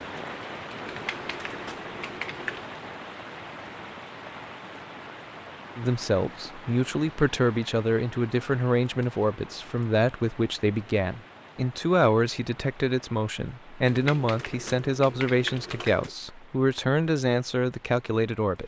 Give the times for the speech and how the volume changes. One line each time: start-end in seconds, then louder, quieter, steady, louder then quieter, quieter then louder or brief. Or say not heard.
5.8-18.6 steady.